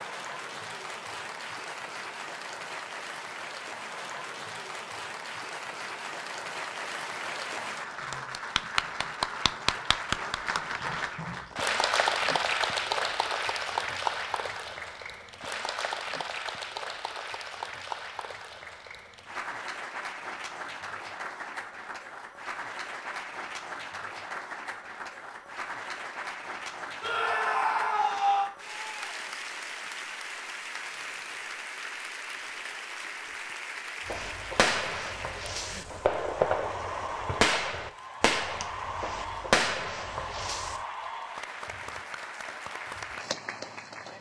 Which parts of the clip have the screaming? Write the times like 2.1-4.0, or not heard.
27.0-28.5.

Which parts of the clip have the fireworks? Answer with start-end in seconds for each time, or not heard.
34.0-40.8.